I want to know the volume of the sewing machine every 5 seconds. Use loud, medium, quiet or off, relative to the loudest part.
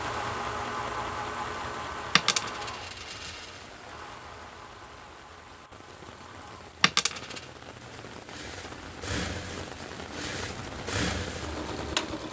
loud, medium, loud.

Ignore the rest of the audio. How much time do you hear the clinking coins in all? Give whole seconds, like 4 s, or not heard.
2 s.